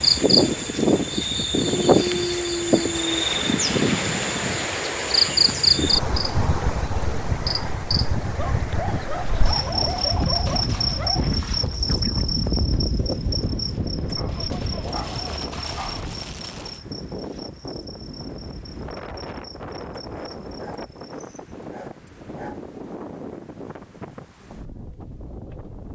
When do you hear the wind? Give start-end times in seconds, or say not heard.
0.0-25.9.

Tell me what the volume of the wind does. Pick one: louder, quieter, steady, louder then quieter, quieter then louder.
quieter.